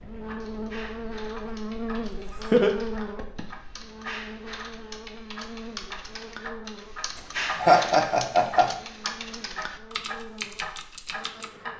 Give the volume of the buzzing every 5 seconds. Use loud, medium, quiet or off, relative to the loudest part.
loud, medium, medium.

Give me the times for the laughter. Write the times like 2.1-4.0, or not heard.
2.0-3.5, 7.2-8.7.